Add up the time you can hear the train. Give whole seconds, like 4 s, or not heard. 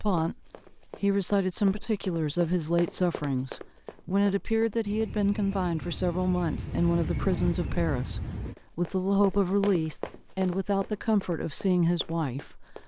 4 s.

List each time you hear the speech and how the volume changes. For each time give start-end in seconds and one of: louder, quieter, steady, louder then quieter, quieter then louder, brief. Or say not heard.
0.0-12.8 steady.